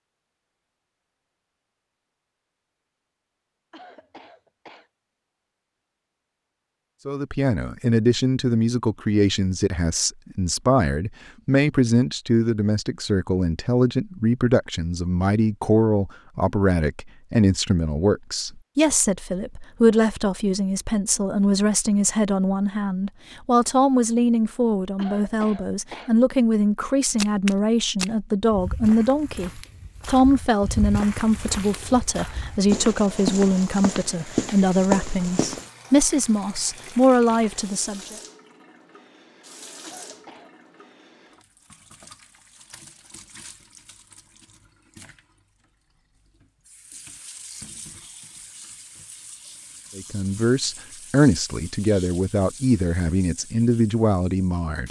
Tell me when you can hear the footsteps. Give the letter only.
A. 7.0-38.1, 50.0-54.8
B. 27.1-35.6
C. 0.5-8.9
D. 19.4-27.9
B.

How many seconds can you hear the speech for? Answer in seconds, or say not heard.
36 s.